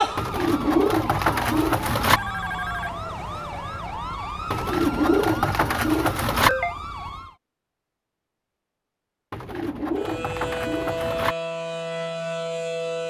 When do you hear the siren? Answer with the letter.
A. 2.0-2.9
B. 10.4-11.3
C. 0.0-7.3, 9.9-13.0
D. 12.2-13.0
C.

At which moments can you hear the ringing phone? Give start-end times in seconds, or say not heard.
2.0-2.9.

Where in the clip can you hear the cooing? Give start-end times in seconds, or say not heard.
0.1-2.2, 4.5-6.5, 9.3-11.3.